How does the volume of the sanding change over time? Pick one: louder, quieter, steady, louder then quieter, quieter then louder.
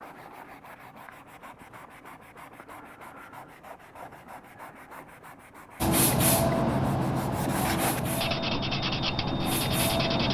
louder.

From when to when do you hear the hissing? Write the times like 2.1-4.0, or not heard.
5.8-10.2.